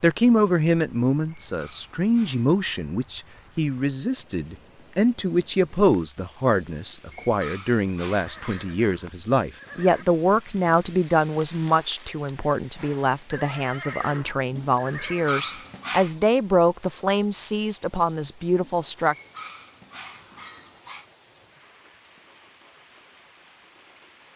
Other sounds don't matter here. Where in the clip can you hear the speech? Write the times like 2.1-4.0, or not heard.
0.0-19.1.